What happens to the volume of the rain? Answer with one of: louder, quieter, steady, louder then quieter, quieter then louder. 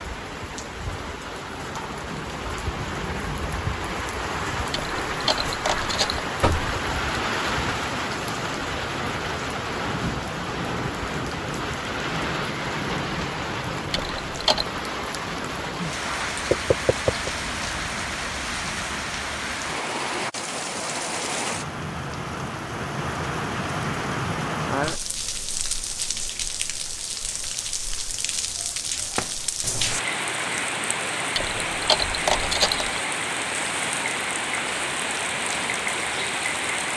steady.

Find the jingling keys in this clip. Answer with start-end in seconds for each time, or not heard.
4.7-6.2, 13.9-14.7, 31.4-33.0.